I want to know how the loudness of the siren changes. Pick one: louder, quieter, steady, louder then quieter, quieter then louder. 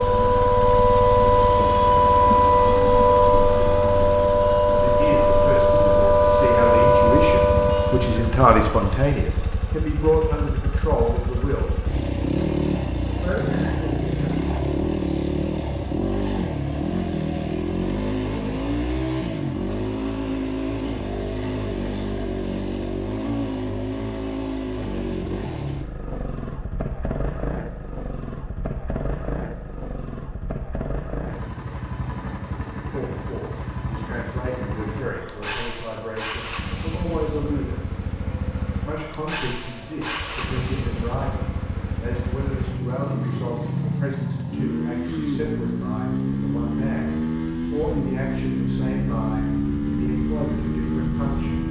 steady.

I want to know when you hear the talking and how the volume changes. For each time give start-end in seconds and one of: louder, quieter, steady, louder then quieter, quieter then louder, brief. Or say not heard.
4.7-11.8 louder then quieter
13.1-14.2 brief
32.9-37.8 louder
38.9-51.6 steady.